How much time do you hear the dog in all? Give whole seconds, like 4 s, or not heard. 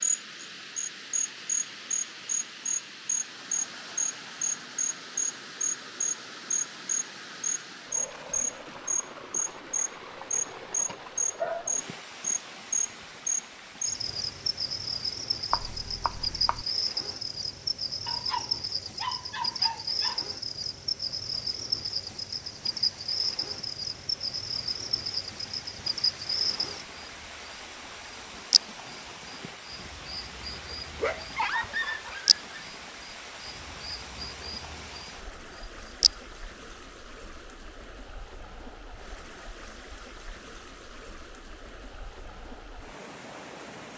5 s.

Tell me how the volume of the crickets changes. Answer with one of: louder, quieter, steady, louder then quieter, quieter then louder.
quieter.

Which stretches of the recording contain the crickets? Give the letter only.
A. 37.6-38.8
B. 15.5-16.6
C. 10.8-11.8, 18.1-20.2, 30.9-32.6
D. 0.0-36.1
D.